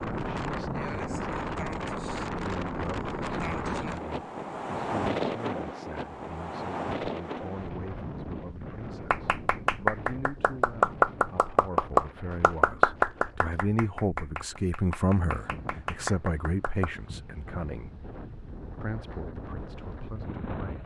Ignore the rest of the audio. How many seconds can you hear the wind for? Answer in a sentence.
You can hear the wind for 21 seconds altogether.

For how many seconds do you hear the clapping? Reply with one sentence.
The clapping can be heard for 8 seconds in total.